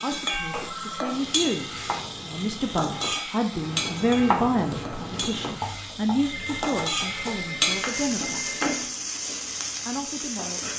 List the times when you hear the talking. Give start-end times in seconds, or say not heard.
0.0-8.6, 9.8-10.7.